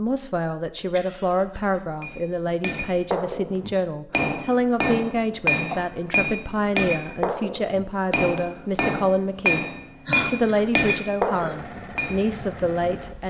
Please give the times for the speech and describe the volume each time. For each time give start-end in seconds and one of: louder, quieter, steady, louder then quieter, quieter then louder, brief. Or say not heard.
0.0-9.7 steady
10.2-13.2 brief.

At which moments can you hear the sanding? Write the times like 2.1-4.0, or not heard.
not heard.